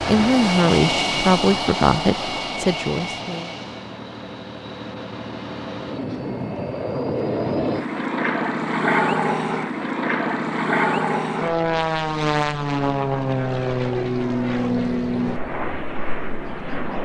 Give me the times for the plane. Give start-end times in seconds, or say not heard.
0.0-16.9.